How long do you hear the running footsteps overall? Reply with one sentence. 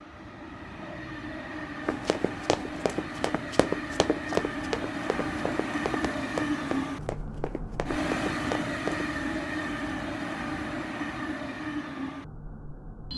You can hear the running footsteps for 7 seconds altogether.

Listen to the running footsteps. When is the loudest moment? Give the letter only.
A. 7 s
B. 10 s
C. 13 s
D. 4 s
D.